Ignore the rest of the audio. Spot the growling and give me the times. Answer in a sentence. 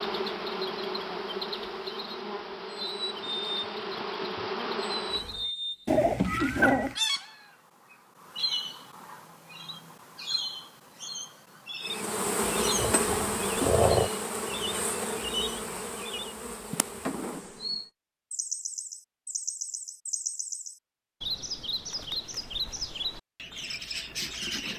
The growling can be heard from 5.8 to 7.0 s and from 12.9 to 14.1 s.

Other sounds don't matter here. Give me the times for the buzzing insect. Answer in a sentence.
You can hear the buzzing insect from 0.0 to 5.5 s and from 11.8 to 17.9 s.